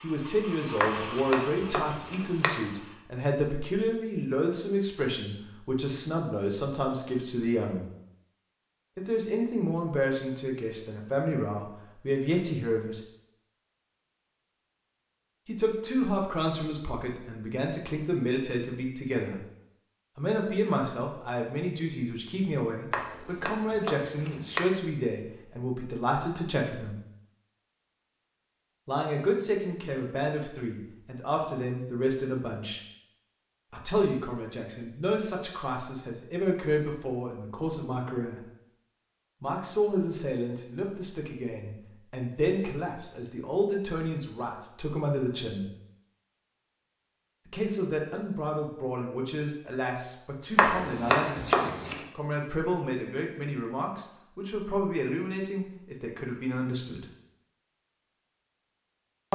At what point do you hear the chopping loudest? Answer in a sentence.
The loudest moment of the chopping is at 51 seconds.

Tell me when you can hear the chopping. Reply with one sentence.
The chopping can be heard from 0.8 to 2.5 s, from 22.9 to 24.6 s and from 50.5 to 52.0 s.